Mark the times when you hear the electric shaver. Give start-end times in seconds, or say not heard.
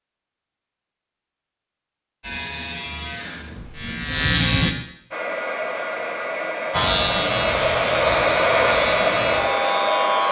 2.2-4.8, 6.7-10.2.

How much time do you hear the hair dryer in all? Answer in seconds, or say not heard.
5 s.